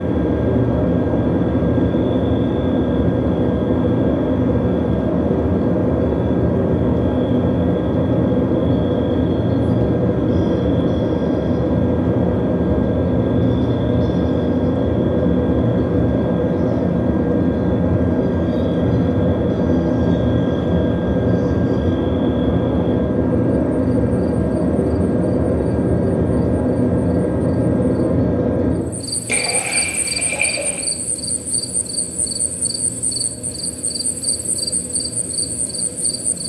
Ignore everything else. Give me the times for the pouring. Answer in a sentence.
The pouring can be heard from 29.2 to 30.8 s.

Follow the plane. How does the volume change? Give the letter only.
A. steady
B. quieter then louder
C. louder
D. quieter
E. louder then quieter
D.